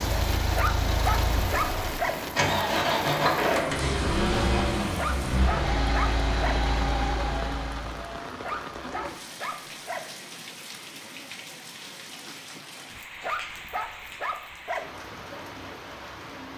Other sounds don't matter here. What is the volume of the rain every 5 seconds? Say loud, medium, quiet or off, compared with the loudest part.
loud, loud, medium, medium.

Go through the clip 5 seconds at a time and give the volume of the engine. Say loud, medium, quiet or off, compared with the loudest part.
loud, loud, off, off.